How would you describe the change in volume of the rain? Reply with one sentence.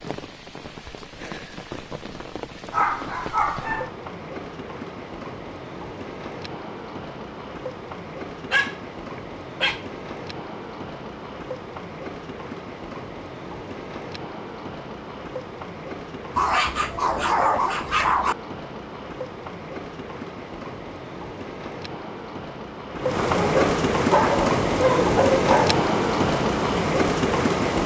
The volume of the rain goes up.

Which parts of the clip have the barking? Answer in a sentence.
The barking can be heard from 2.7 to 3.9 s, from 8.5 to 9.8 s, from 16.4 to 18.4 s and from 23.2 to 25.8 s.